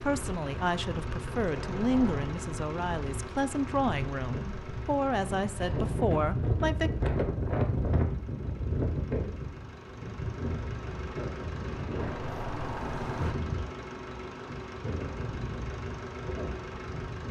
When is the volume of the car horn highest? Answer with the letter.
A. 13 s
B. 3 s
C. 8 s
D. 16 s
A.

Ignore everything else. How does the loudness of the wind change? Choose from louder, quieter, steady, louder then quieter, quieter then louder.
louder then quieter.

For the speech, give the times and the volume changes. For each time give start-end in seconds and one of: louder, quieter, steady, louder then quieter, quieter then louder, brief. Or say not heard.
0.0-6.9 steady.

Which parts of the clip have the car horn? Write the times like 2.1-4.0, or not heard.
1.5-2.2, 11.9-13.3.